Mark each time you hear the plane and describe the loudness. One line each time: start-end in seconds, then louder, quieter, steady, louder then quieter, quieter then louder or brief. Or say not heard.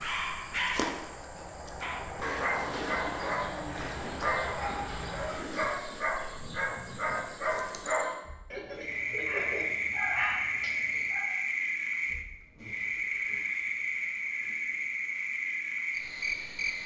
0.0-5.5 louder.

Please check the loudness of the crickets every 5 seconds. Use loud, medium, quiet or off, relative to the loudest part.
medium, medium, loud, loud.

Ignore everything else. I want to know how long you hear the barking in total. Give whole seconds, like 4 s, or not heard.
11 s.